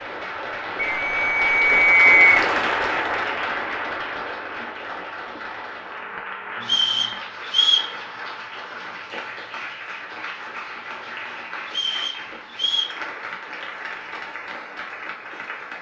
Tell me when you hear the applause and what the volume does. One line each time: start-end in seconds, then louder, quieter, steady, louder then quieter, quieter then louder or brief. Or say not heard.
0.0-15.7 quieter.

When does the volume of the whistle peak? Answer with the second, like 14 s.
2 s.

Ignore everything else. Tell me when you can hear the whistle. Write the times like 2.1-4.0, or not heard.
0.8-2.5, 6.7-7.9, 11.7-12.9.